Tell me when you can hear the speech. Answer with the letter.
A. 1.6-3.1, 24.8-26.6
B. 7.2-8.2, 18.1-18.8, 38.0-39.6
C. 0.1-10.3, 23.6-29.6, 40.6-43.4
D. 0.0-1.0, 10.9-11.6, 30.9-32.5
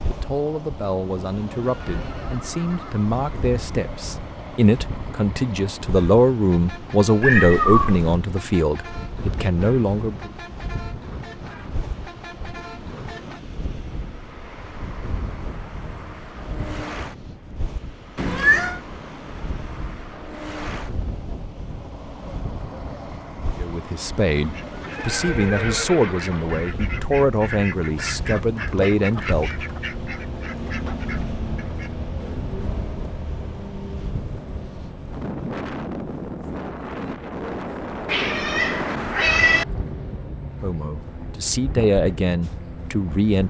C.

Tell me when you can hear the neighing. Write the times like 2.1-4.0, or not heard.
1.6-3.1, 24.8-26.6.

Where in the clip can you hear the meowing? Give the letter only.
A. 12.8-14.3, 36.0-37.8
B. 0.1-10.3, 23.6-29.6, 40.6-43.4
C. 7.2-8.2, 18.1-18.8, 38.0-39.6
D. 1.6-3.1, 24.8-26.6
C.